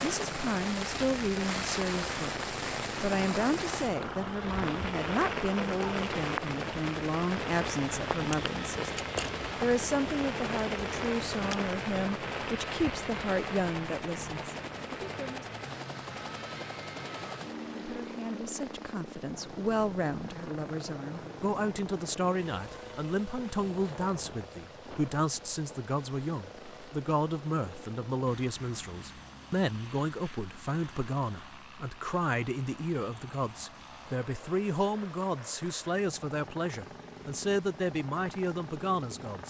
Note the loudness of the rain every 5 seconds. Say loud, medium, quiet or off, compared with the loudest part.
loud, loud, loud, quiet, quiet, quiet, quiet, quiet.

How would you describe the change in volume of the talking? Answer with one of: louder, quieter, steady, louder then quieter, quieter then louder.
steady.